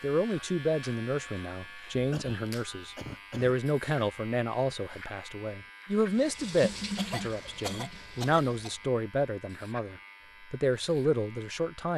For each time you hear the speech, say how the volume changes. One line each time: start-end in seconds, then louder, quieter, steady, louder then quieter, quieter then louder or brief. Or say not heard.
0.0-11.9 steady.